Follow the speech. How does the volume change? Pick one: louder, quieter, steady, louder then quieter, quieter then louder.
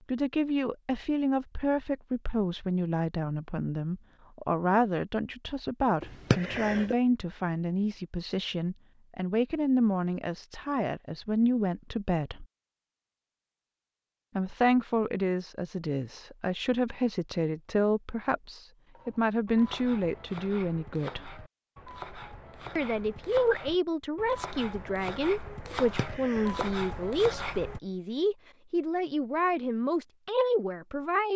steady.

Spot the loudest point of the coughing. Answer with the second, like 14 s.
6 s.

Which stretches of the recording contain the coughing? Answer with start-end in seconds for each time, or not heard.
6.0-7.0, 25.7-26.7.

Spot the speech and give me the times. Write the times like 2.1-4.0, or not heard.
0.1-12.4, 14.3-21.4, 22.8-31.3.